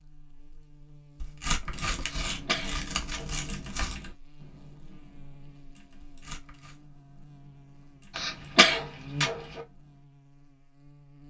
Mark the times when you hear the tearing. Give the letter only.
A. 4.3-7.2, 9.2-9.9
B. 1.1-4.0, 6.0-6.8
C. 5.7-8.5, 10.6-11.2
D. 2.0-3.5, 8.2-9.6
B.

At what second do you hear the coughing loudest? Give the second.
9 s.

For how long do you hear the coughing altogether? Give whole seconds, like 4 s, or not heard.
3 s.